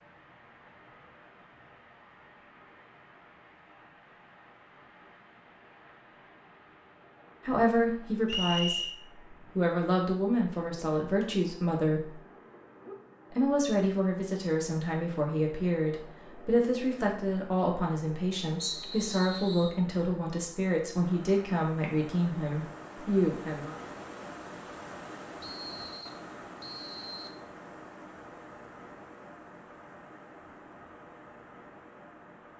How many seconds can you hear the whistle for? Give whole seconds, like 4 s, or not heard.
4 s.